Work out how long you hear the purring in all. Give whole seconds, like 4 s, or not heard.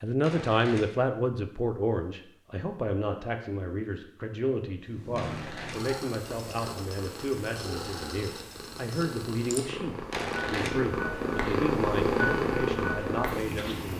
9 s.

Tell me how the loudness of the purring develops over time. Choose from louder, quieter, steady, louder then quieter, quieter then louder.
louder.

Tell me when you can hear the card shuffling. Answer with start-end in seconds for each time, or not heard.
0.2-0.9, 5.1-5.8, 10.1-10.8.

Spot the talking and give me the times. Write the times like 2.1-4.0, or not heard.
0.0-13.9.